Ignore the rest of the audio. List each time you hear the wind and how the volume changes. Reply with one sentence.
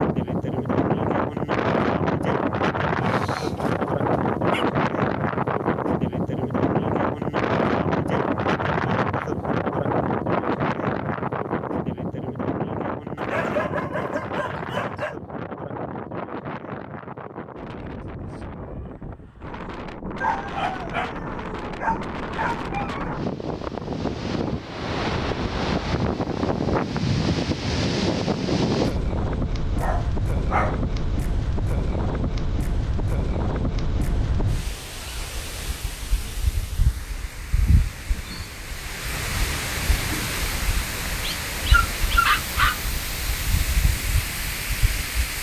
You can hear the wind from 0.0 to 45.3 s, getting quieter.